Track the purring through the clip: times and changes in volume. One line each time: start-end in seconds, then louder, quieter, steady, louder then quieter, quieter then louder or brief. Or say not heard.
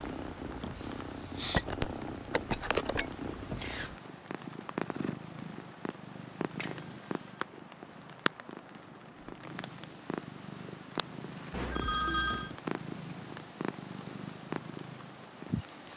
0.0-15.9 steady.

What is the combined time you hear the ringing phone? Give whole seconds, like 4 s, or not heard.
3 s.